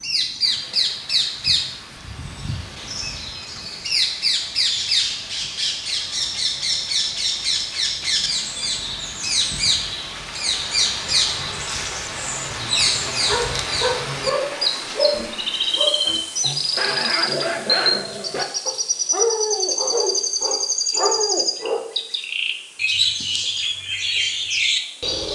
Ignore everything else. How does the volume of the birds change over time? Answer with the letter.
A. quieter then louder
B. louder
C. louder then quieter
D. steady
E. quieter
D.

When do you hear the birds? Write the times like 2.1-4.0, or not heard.
0.0-25.3.